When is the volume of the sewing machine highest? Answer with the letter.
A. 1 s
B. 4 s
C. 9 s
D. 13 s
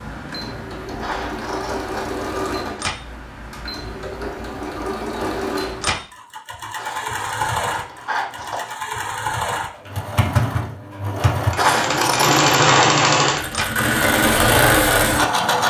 D.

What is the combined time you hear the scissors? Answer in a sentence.
The scissors can be heard for 4 seconds in total.